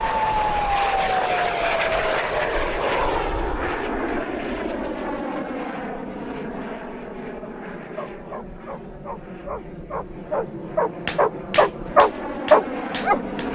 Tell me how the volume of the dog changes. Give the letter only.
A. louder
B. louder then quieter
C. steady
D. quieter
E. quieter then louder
A.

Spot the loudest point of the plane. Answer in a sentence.
The volume of the plane peaks at 1 second.